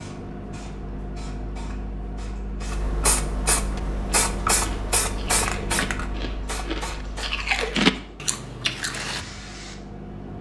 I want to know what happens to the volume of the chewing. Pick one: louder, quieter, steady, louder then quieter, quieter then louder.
louder then quieter.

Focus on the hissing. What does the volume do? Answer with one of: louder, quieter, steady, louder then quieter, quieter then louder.
louder then quieter.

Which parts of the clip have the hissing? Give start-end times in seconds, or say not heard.
0.0-10.2.